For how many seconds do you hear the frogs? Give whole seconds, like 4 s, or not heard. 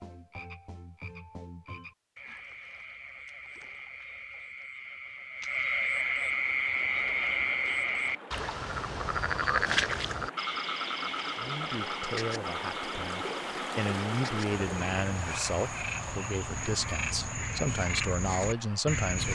19 s.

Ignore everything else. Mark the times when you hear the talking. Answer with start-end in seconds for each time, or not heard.
11.3-19.3.